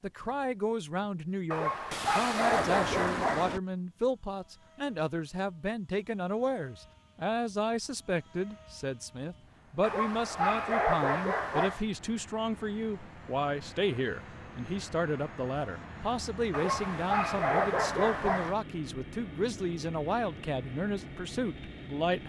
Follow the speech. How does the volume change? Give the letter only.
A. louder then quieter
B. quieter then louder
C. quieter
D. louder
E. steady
E.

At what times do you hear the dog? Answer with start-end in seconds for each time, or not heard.
1.5-3.5, 9.8-11.8, 16.5-18.6.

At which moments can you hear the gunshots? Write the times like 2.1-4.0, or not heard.
1.9-3.6.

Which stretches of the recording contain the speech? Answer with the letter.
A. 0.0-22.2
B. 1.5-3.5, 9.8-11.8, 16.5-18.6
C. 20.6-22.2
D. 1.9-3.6
A.